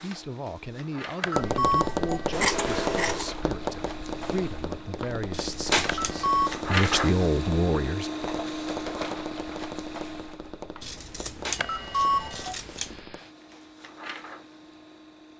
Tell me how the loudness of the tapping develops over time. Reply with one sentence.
The loudness of the tapping goes down.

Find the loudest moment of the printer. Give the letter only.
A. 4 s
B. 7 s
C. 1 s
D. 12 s
B.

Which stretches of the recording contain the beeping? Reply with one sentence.
The beeping can be heard from 1.2 to 3.1 s, from 5.8 to 6.6 s and from 11.6 to 12.6 s.